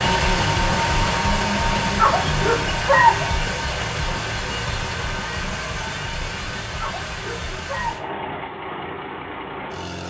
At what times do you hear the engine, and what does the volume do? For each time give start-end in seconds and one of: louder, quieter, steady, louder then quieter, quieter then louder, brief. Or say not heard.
0.0-10.0 quieter.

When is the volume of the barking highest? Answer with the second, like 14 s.
3 s.